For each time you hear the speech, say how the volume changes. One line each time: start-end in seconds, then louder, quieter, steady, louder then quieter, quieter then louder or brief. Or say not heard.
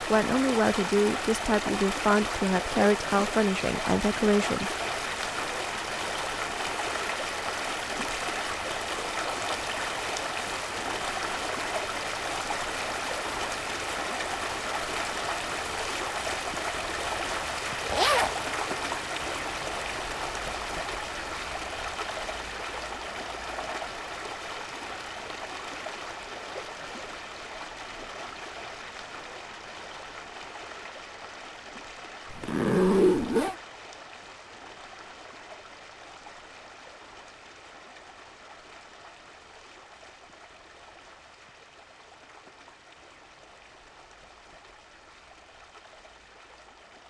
0.1-4.7 steady.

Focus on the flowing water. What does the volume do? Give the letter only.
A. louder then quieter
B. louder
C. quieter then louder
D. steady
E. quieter
E.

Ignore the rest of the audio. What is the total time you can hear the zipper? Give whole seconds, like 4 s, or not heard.
2 s.